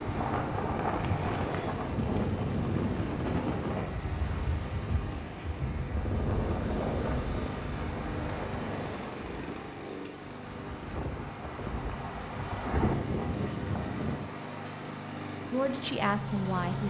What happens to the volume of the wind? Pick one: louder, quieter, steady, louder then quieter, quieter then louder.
quieter then louder.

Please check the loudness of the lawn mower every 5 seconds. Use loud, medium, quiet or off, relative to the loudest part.
loud, loud, medium, loud.